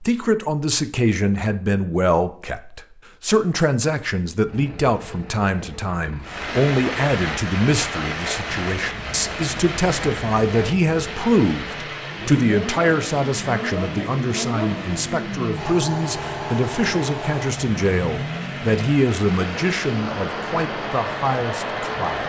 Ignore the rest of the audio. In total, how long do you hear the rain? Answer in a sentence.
The rain can be heard for 16 seconds in total.